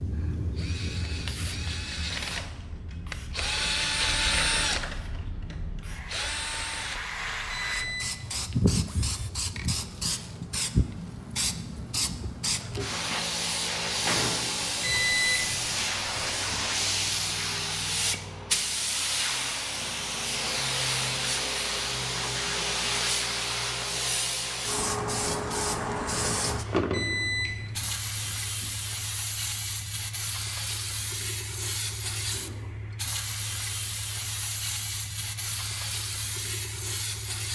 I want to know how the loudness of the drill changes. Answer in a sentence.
The volume of the drill goes up, then down.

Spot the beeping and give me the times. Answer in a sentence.
You can hear the beeping from 7.5 to 8.4 s, from 14.8 to 16.6 s and from 26.9 to 28.7 s.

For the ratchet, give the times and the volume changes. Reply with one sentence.
The ratchet can't be heard in this clip.